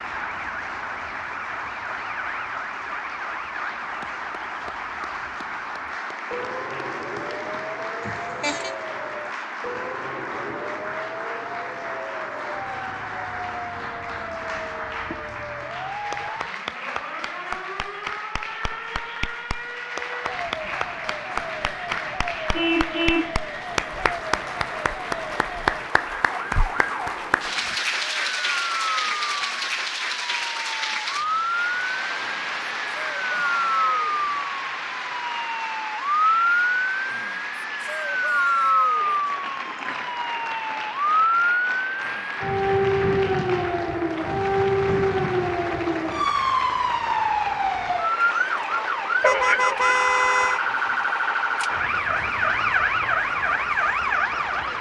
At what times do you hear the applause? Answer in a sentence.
You can hear the applause from 0.0 to 54.7 s.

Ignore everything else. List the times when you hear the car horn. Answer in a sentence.
The car horn can be heard from 8.0 to 8.8 s, from 22.5 to 23.4 s and from 49.2 to 50.6 s.